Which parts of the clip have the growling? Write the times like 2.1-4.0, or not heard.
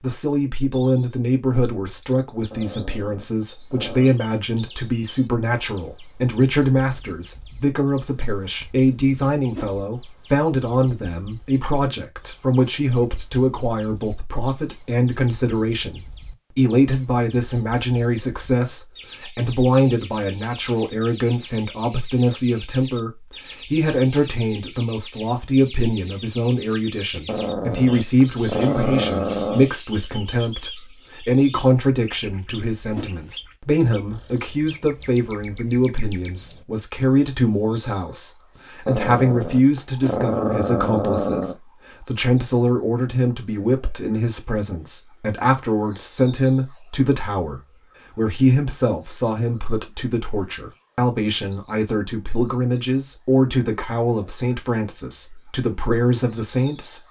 2.5-4.2, 27.2-29.7, 38.9-41.5.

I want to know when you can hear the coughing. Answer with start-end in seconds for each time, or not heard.
not heard.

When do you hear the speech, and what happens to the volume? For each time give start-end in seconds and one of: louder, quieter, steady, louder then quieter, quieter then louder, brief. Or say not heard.
0.0-57.0 steady.